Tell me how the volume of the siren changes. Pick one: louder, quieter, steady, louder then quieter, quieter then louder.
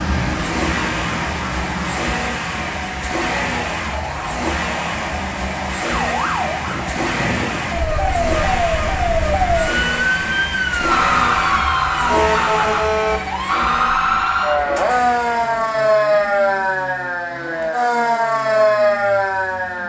louder.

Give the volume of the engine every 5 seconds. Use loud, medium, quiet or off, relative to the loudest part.
loud, loud, loud, quiet.